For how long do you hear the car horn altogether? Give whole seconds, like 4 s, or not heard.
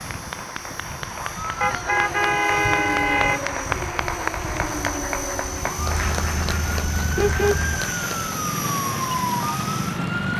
4 s.